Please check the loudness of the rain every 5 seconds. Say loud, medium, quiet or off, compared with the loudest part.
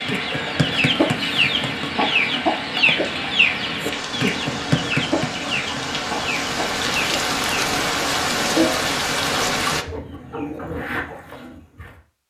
medium, loud, off.